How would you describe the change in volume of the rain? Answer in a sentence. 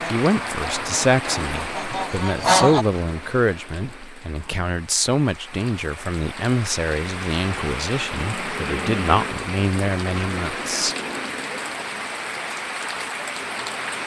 The loudness of the rain goes down, then up.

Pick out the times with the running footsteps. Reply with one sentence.
You can't hear the running footsteps here.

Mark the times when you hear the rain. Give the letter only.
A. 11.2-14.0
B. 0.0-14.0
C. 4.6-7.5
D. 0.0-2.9
B.